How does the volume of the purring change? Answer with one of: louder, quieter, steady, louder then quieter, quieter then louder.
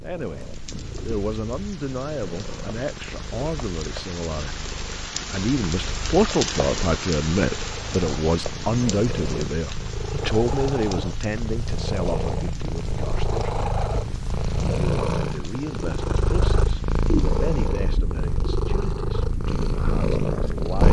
louder.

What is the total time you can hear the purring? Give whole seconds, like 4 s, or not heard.
21 s.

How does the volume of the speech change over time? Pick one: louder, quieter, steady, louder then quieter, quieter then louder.
louder then quieter.